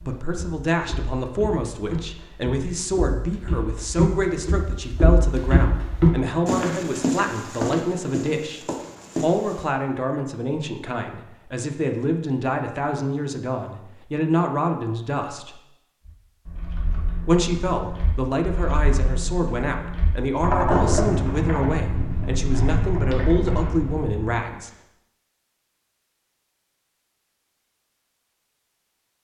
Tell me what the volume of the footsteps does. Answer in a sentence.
The loudness of the footsteps goes up, then down.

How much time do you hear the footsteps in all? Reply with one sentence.
You can hear the footsteps for 10 seconds altogether.